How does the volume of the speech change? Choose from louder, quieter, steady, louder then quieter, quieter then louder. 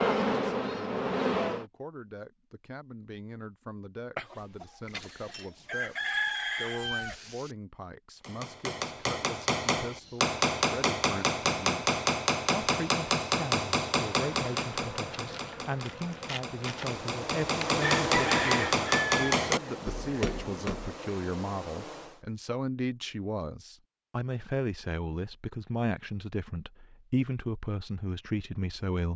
louder.